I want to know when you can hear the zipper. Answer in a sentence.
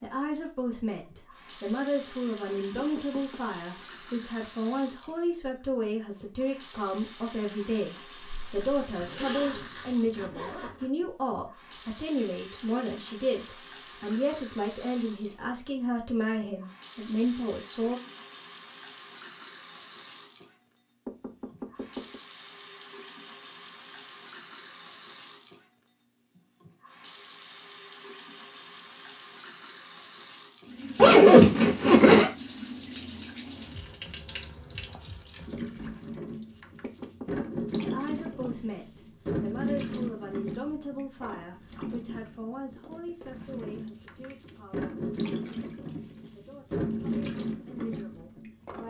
The zipper can be heard from 8.2 to 10.8 s and from 30.9 to 32.3 s.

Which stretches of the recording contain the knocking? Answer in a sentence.
The knocking can be heard from 2.8 to 3.4 s, from 21.1 to 22.2 s and from 36.8 to 38.5 s.